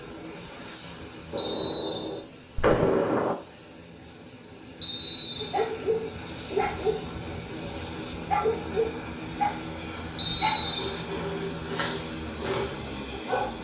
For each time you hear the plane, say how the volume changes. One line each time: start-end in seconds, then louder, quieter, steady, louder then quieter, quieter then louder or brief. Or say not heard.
0.0-13.5 louder.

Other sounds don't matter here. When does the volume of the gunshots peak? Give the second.
3 s.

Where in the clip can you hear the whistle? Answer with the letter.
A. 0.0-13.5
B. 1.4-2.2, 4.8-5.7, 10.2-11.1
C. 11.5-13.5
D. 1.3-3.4
B.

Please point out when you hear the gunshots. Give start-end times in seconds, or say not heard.
1.3-3.4.